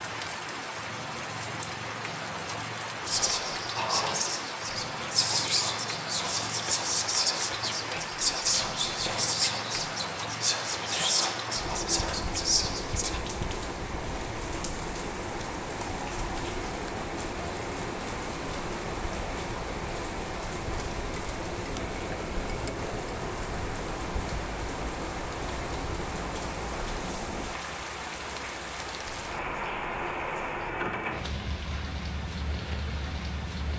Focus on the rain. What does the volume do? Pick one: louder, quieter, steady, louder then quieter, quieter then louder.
steady.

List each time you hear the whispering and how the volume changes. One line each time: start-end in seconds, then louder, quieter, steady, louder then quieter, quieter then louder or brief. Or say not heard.
3.0-13.2 steady.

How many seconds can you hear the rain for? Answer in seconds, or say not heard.
34 s.